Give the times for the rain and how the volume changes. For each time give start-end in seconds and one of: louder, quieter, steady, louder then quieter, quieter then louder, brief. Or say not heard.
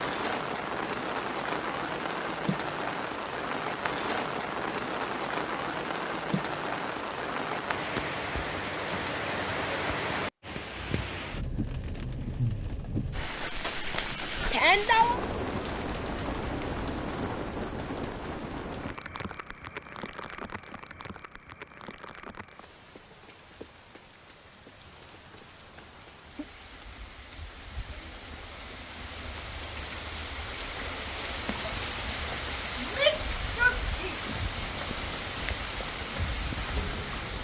0.0-37.4 quieter then louder.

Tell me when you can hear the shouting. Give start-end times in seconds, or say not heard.
14.5-15.2, 32.8-34.2.